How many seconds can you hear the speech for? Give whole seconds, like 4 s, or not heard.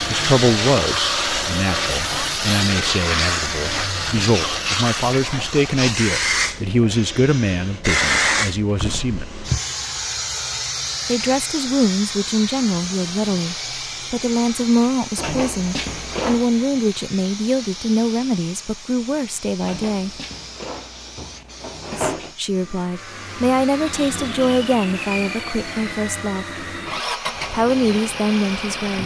25 s.